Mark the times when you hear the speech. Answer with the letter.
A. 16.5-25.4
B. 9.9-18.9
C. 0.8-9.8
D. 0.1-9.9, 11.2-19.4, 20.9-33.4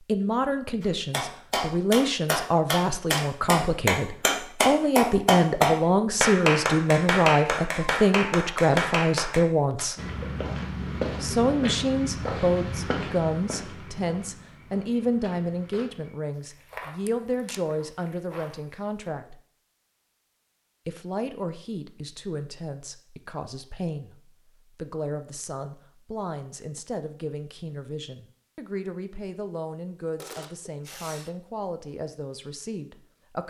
D.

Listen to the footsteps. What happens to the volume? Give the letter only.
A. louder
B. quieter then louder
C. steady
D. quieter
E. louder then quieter
D.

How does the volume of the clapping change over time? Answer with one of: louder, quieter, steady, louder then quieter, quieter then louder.
louder then quieter.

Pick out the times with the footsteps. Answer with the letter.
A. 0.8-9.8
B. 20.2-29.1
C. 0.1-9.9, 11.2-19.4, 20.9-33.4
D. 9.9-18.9
D.